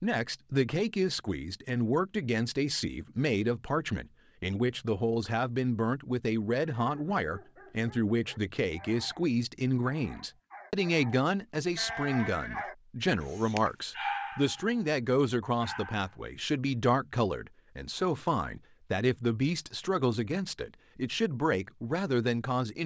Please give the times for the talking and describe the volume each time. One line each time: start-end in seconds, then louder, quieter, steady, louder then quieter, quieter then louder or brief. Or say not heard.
0.0-22.8 steady.